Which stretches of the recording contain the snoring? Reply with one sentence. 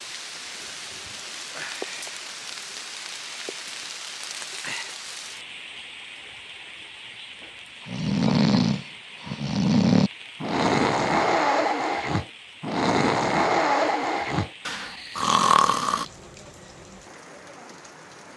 You can hear the snoring from 7.8 to 16.1 s.